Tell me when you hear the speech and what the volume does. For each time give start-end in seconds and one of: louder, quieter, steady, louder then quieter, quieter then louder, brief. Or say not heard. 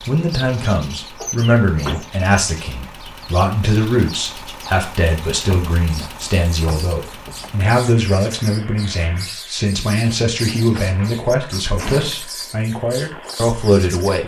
0.1-14.2 steady.